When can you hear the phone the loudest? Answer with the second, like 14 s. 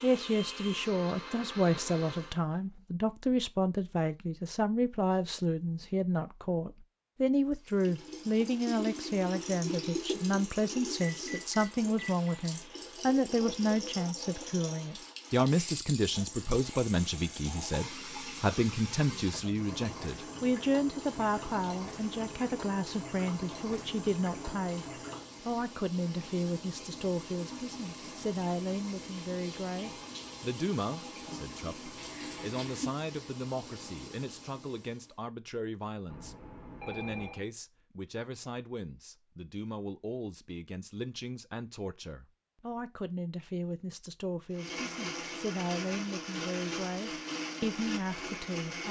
37 s.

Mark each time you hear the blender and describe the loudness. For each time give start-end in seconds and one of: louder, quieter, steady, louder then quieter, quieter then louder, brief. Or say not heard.
0.0-2.4 brief
44.5-48.8 steady.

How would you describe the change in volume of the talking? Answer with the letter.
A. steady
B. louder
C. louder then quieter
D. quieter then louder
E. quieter
E.